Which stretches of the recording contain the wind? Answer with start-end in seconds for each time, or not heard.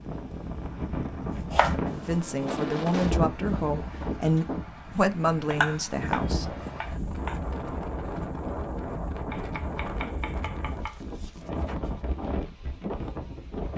0.0-13.7.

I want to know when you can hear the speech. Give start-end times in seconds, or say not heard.
1.9-6.5.